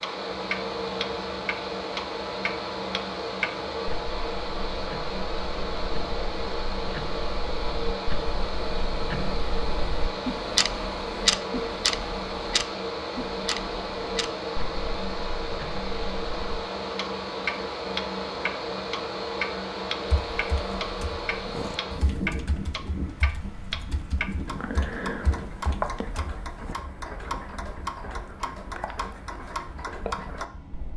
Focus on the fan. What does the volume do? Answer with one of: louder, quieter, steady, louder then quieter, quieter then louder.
quieter.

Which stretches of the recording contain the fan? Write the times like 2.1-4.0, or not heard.
0.0-30.9.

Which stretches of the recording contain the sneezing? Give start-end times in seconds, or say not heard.
not heard.